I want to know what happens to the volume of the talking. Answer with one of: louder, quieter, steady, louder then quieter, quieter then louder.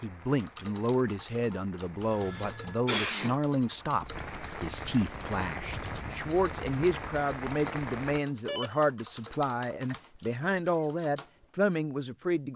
steady.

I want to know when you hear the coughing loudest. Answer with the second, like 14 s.
3 s.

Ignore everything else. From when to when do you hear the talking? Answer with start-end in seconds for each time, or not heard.
0.0-12.5.